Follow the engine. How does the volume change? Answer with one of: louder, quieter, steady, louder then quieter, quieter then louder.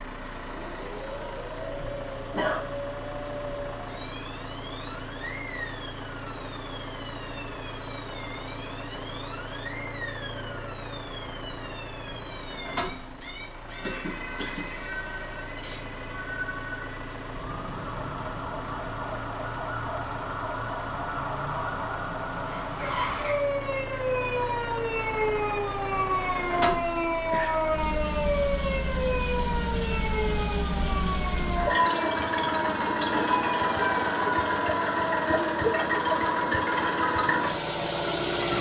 louder.